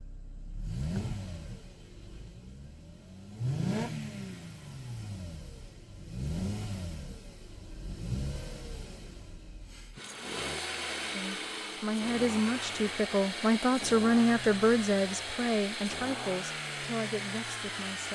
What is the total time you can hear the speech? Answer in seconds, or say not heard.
7 s.